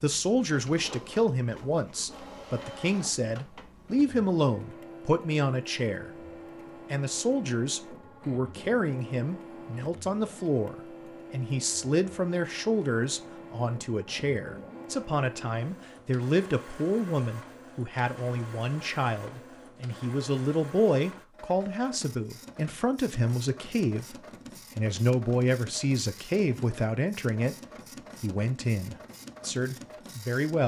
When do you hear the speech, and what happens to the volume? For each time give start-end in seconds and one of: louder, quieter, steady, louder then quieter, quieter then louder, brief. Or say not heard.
0.0-27.6 steady
28.2-30.6 brief.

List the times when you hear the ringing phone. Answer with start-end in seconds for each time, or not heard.
not heard.